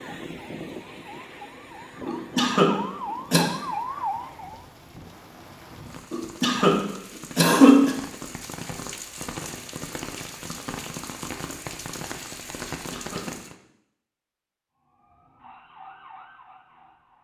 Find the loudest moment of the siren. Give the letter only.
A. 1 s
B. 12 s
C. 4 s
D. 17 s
C.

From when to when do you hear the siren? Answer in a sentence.
You can hear the siren from 0.0 to 4.7 s and from 14.8 to 17.1 s.